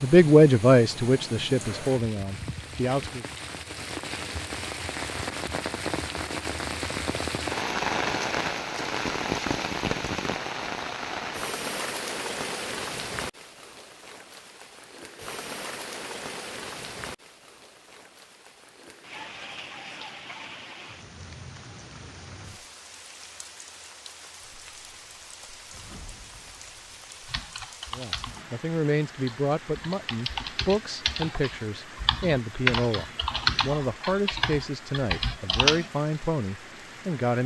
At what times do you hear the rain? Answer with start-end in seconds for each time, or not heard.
0.0-37.4.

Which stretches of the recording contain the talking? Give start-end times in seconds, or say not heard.
0.0-3.2, 27.9-37.4.